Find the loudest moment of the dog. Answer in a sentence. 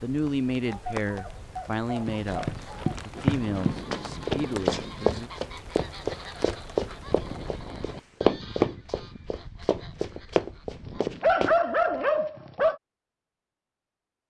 The volume of the dog peaks at 11 seconds.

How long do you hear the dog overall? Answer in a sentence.
The dog can be heard for 4 seconds in total.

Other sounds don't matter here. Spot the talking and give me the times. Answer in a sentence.
The talking can be heard from 0.0 to 5.3 s.